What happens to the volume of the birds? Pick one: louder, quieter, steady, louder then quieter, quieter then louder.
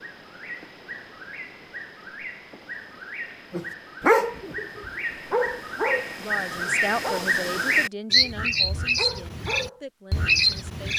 louder.